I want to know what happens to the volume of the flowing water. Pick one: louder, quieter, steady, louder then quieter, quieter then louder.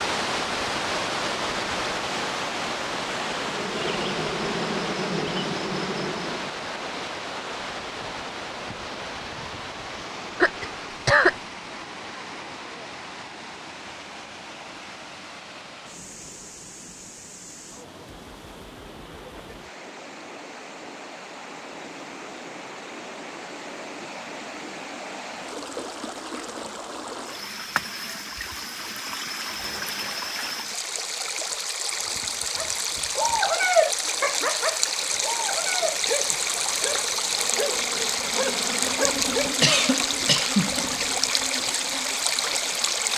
quieter then louder.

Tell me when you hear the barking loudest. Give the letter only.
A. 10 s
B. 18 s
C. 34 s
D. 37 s
C.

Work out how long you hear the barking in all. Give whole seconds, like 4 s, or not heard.
7 s.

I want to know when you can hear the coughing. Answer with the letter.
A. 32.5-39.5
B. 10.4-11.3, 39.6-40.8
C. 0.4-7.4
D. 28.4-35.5
B.